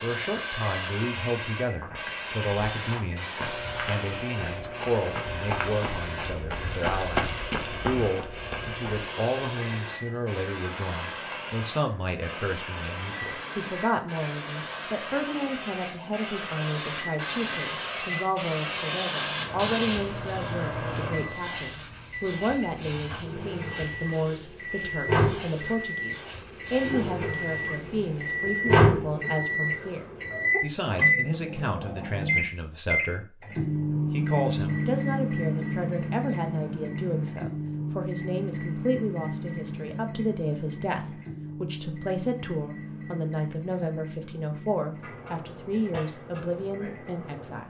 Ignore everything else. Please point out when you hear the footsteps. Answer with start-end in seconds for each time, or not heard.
1.7-9.1.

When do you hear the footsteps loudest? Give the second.
7 s.